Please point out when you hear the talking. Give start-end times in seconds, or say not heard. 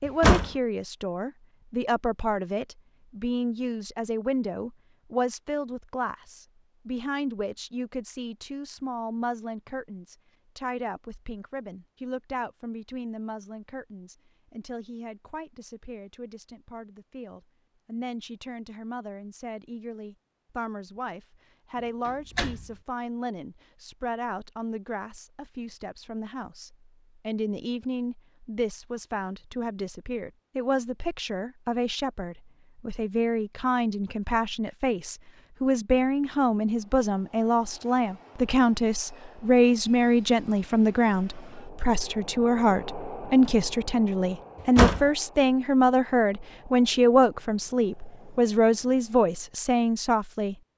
0.0-50.5.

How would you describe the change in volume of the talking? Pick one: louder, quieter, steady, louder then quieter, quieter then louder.
quieter then louder.